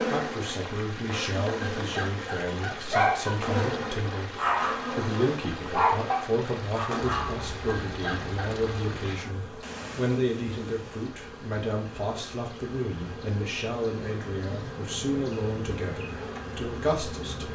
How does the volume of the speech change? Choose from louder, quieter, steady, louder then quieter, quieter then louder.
steady.